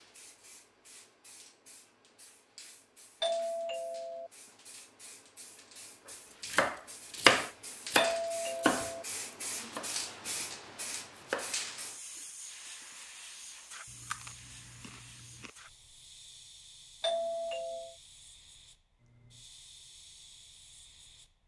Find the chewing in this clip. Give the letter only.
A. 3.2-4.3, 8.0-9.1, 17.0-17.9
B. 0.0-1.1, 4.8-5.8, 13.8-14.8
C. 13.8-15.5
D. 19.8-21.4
C.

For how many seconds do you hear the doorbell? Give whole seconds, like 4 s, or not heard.
3 s.